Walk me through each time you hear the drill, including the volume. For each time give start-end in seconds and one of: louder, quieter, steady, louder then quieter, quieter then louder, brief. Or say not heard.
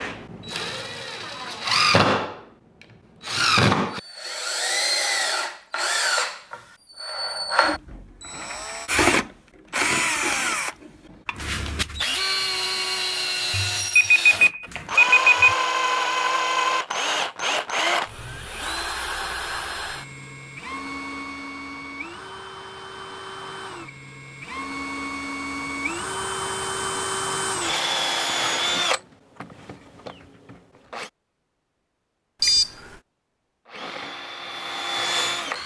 0.0-31.1 quieter then louder
33.6-35.6 brief.